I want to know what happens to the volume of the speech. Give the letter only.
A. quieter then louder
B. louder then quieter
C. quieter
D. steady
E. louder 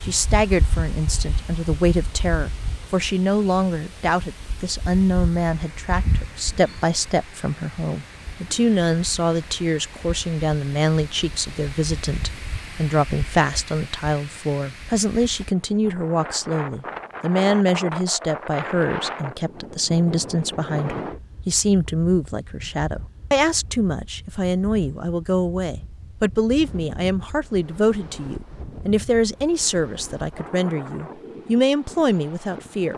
D.